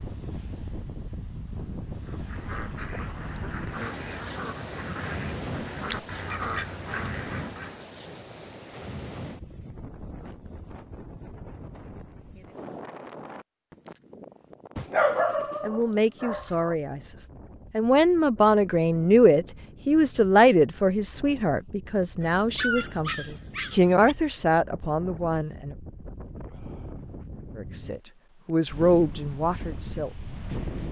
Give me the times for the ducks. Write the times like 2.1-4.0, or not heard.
2.0-7.8.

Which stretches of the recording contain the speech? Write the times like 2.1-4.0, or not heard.
15.6-25.8, 27.6-30.1.